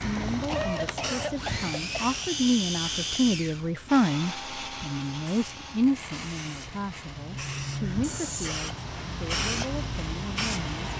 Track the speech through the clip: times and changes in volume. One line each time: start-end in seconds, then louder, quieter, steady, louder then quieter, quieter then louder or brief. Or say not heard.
0.0-10.9 louder then quieter.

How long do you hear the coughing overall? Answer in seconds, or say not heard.
2 s.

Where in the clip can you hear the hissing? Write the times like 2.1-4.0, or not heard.
0.0-10.9.